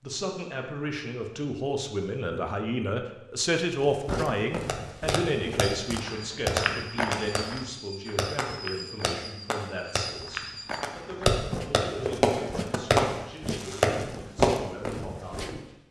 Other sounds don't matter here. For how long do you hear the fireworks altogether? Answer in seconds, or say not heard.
10 s.